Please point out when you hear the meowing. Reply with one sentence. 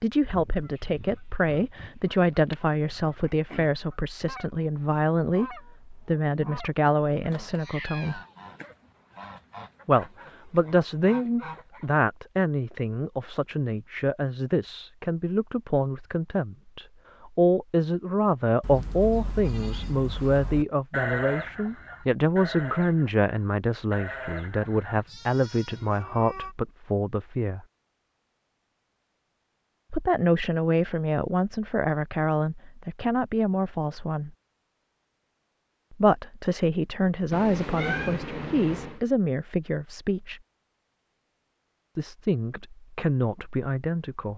The meowing can be heard from 7.5 to 8.3 s, from 25.6 to 26.6 s and from 37.3 to 39.0 s.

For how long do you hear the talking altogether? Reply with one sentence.
You can hear the talking for 37 seconds altogether.